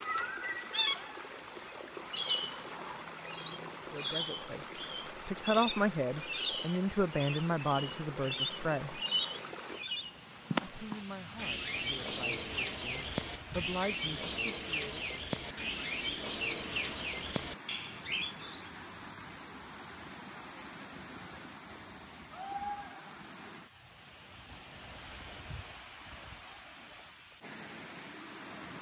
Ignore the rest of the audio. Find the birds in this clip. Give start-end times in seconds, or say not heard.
0.0-18.7.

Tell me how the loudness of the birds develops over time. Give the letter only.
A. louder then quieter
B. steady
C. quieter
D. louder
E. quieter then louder
B.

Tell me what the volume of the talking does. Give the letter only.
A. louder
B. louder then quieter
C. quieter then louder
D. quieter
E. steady
C.